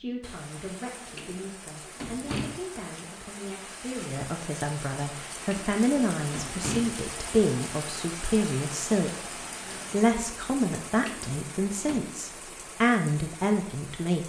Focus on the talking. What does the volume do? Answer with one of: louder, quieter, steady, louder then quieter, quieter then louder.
louder.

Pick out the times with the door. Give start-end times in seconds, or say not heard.
1.1-2.6, 5.5-7.0, 11.1-12.1.